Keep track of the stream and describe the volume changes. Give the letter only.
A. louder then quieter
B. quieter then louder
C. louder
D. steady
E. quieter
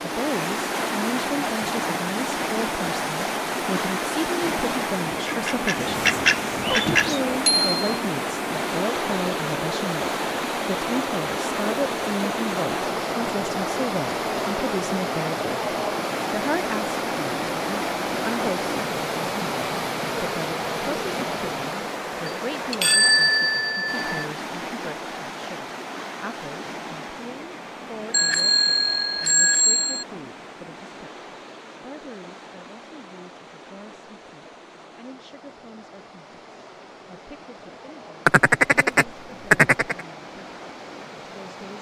E.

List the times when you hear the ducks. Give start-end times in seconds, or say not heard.
5.2-7.2, 38.2-40.0.